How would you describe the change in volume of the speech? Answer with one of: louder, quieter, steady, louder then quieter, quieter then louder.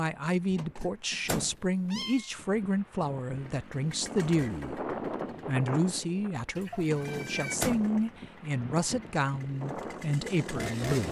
steady.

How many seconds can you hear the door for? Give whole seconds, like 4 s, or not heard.
2 s.